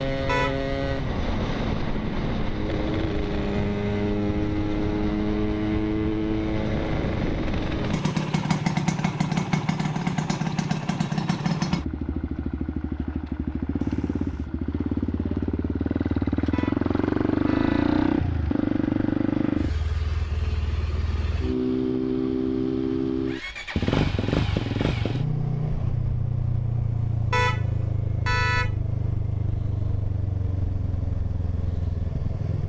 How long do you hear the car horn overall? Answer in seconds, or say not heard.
3 s.